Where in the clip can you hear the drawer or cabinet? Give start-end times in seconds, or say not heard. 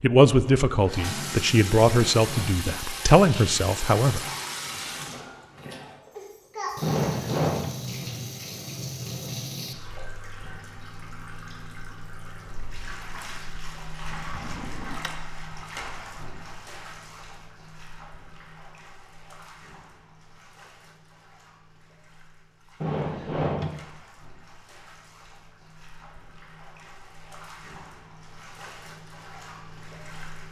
6.8-7.7, 14.2-15.1, 22.8-23.7.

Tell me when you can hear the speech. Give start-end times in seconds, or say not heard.
0.0-4.2.